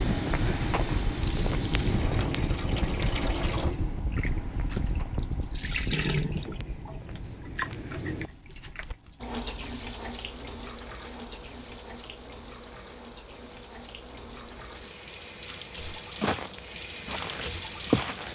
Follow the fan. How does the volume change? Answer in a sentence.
The volume of the fan goes down.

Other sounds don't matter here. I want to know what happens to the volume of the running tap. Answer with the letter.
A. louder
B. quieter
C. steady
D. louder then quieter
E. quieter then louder
E.